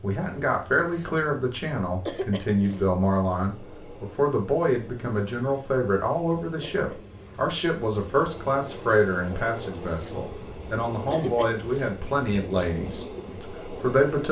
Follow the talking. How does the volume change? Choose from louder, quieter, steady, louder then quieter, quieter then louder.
steady.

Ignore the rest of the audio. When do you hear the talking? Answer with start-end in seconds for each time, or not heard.
0.0-14.2.